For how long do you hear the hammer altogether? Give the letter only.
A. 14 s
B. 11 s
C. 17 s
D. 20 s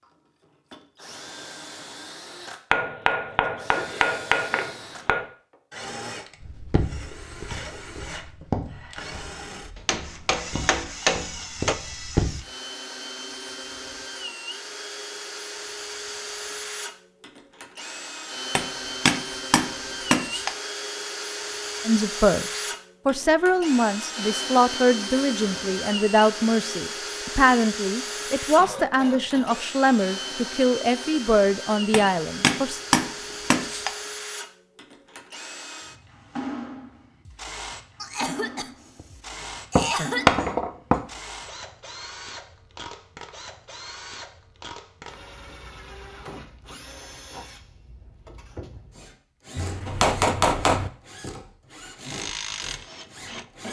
B.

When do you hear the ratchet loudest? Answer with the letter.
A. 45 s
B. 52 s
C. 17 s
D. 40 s
B.